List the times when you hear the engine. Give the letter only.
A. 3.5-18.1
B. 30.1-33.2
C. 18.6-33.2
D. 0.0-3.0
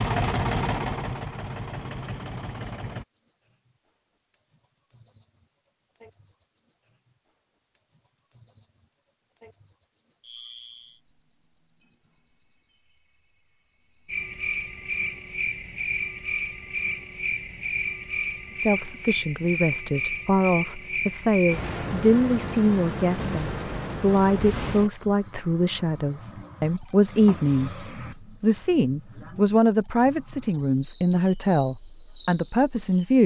D.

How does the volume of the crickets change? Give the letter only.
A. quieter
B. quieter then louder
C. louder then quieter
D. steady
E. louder
D.